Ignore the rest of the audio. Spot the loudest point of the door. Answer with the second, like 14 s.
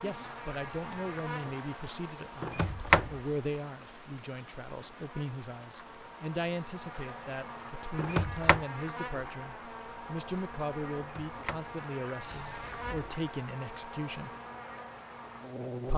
3 s.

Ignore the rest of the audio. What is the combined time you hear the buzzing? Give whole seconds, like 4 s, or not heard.
16 s.